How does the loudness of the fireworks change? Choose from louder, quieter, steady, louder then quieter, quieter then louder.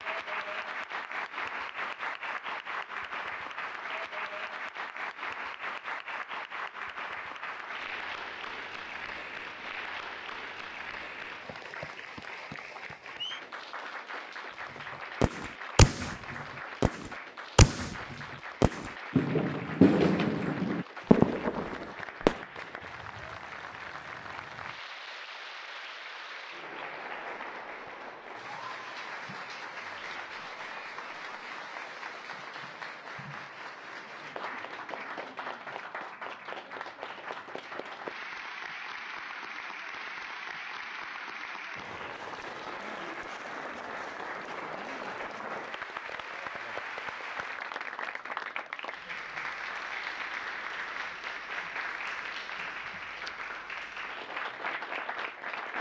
steady.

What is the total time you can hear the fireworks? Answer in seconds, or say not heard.
7 s.